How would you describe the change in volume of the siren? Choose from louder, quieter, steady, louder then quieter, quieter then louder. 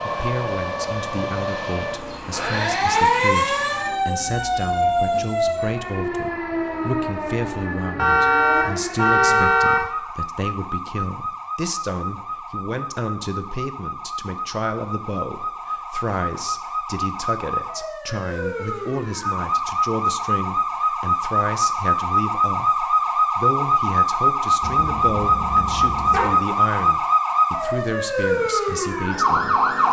quieter then louder.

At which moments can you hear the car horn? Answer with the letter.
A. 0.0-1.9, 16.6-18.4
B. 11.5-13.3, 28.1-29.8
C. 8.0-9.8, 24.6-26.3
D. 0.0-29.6
C.